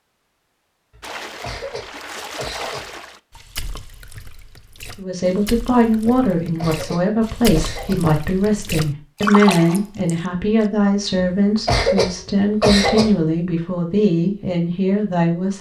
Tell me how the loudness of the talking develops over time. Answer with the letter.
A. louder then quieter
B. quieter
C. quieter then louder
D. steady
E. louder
D.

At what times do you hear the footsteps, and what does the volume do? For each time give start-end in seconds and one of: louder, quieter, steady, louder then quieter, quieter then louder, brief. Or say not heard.
not heard.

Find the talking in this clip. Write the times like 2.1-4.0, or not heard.
5.0-15.5.